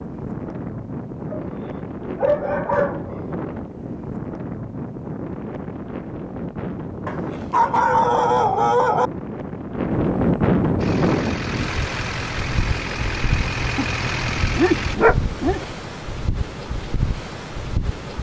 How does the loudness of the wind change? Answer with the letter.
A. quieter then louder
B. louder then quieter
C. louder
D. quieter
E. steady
B.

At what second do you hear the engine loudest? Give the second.
14 s.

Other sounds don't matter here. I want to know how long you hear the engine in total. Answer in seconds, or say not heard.
4 s.